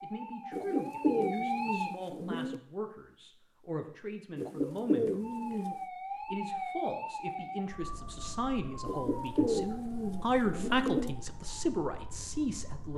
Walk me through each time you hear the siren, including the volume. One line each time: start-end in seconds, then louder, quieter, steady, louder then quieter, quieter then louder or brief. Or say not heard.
0.0-1.9 brief
5.2-12.9 quieter.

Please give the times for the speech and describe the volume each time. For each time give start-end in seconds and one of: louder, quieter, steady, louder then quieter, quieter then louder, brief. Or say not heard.
0.0-12.9 louder.